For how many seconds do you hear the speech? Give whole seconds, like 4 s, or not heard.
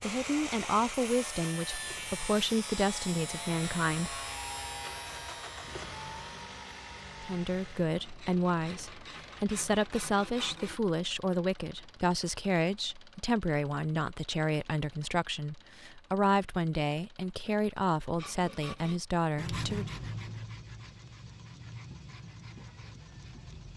17 s.